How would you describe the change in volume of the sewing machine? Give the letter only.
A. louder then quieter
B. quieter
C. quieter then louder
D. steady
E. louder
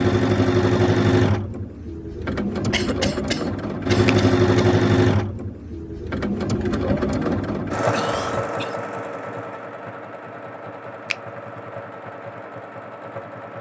B.